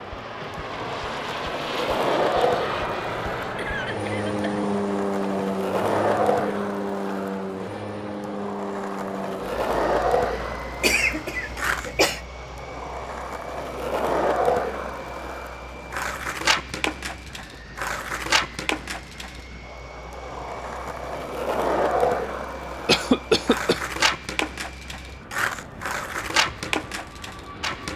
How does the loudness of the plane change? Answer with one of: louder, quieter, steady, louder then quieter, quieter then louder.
quieter.